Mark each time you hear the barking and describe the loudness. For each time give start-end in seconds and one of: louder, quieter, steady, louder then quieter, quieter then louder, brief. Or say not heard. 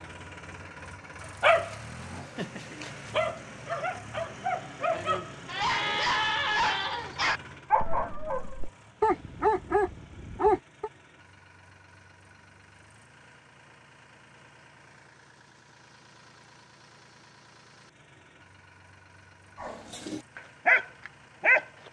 1.4-10.9 louder
19.6-21.6 brief.